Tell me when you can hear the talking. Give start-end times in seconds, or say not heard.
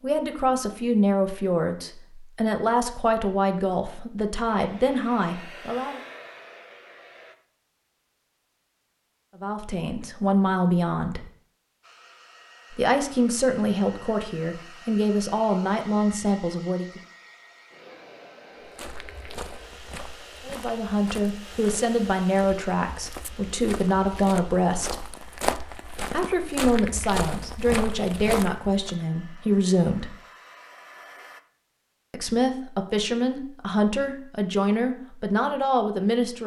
0.0-6.0, 9.4-11.2, 12.7-17.0, 20.4-25.1, 26.1-30.1, 32.1-36.4.